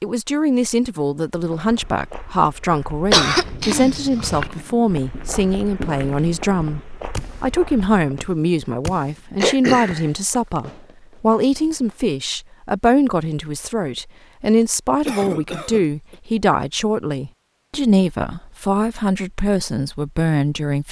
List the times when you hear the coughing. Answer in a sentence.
You can hear the coughing from 3.1 to 4.5 s, from 9.4 to 10.1 s and from 15.0 to 16.1 s.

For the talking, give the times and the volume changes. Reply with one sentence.
You can hear the talking from 0.0 to 20.8 s, at a steady volume.